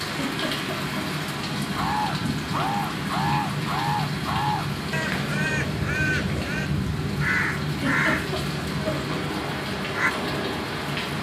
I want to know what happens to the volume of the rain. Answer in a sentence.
The loudness of the rain stays about the same.